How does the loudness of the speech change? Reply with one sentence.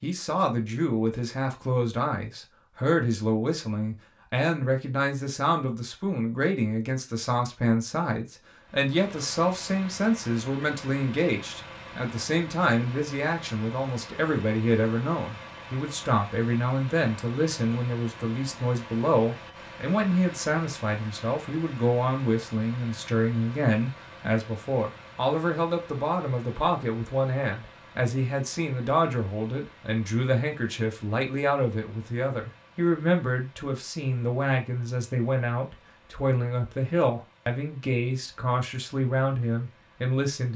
The loudness of the speech stays about the same.